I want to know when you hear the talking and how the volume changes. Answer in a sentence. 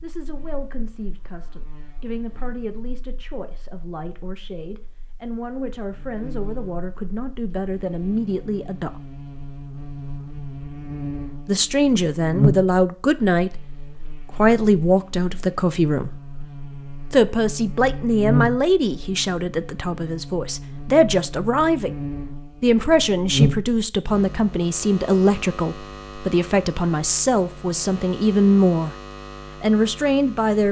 The talking can be heard from 0.0 to 9.0 s, getting louder; briefly from 11.4 to 13.7 s; briefly from 14.3 to 16.1 s; from 17.1 to 21.9 s, getting quieter then louder; from 22.6 to 28.9 s, at a steady volume; and briefly from 29.6 to 30.6 s.